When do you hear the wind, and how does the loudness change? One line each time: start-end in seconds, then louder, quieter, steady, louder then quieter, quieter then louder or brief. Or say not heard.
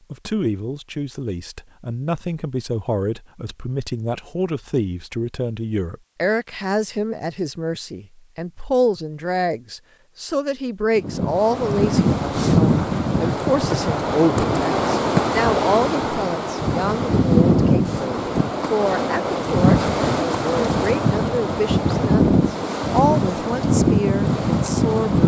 10.9-25.2 steady.